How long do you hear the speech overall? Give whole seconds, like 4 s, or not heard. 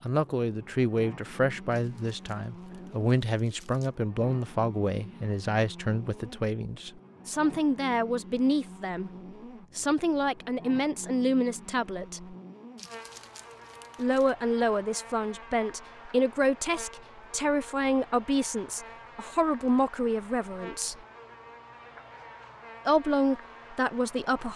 20 s.